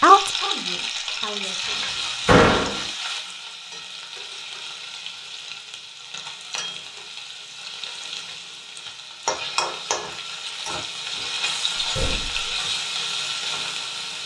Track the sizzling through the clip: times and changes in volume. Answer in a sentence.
The sizzling can be heard from 0.0 to 14.2 s, getting quieter then louder.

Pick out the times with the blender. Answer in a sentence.
The blender can't be heard in this clip.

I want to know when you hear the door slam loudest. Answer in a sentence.
The volume of the door slam peaks at 2 seconds.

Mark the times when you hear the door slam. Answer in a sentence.
The door slam can be heard from 1.6 to 2.8 s and from 11.8 to 12.5 s.